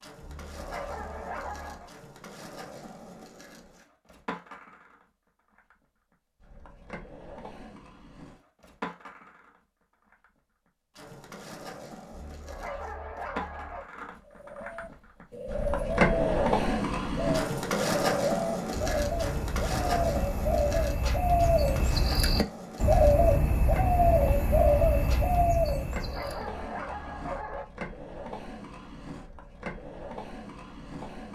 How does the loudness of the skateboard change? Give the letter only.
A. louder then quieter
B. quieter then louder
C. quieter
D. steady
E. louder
A.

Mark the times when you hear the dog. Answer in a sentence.
You can hear the dog from 0.2 to 1.9 s, from 12.1 to 13.9 s and from 25.9 to 27.6 s.